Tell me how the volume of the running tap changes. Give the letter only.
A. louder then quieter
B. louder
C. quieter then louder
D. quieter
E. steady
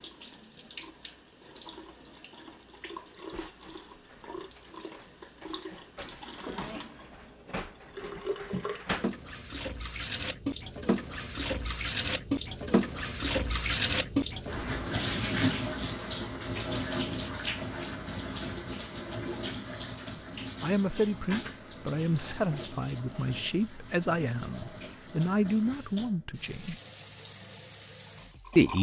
A.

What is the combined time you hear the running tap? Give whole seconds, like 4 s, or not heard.
29 s.